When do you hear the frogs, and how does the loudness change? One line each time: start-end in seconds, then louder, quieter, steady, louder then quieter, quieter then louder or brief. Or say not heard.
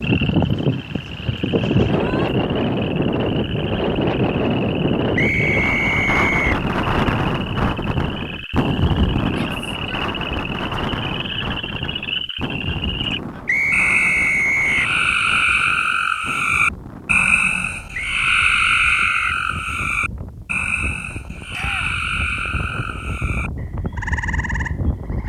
0.0-25.2 louder then quieter.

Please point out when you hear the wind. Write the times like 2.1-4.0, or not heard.
0.0-25.2.